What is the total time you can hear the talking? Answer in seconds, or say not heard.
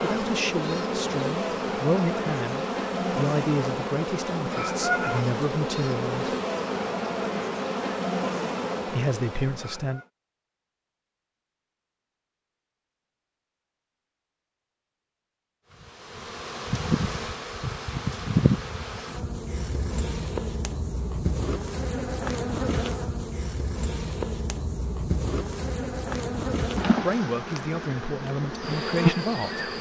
10 s.